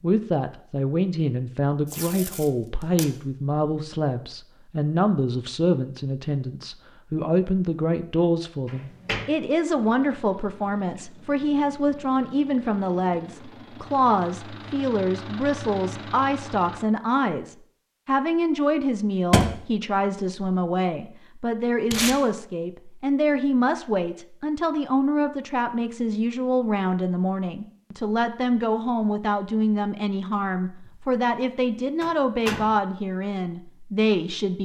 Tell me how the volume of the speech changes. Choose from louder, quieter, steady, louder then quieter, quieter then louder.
steady.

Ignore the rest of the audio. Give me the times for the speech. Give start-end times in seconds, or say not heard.
0.0-34.6.